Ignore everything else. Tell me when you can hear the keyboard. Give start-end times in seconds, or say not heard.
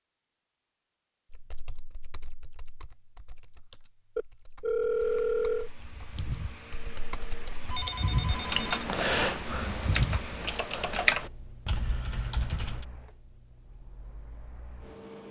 1.3-12.8.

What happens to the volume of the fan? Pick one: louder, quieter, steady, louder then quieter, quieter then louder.
louder then quieter.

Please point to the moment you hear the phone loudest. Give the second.
5 s.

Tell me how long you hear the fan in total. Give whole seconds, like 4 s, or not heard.
10 s.